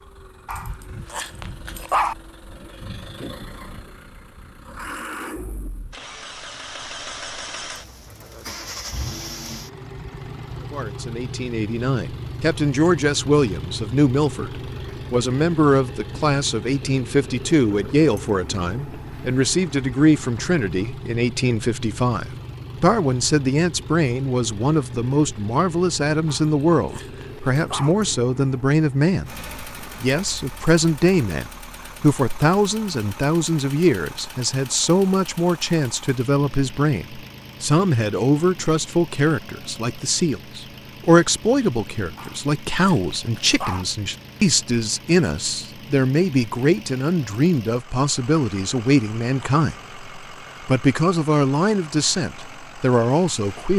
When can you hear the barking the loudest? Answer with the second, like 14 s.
2 s.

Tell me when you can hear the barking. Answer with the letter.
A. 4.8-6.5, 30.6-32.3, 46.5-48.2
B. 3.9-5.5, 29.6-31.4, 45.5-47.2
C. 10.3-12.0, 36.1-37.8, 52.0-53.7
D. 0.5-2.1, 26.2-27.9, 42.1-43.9
D.